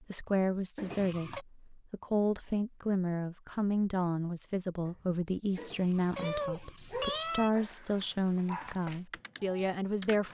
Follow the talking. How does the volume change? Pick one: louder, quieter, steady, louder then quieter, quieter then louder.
steady.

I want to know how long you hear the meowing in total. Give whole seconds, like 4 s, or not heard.
3 s.